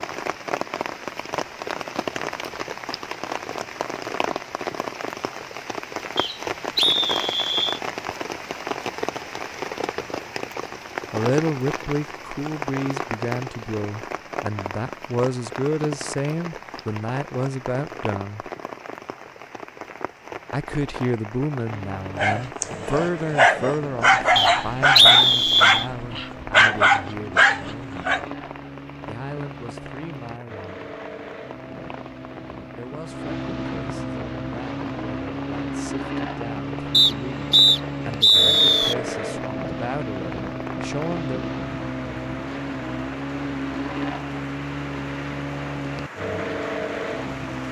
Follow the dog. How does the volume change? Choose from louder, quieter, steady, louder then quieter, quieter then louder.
steady.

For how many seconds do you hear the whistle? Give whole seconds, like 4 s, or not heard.
5 s.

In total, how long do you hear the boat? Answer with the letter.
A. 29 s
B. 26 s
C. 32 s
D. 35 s
B.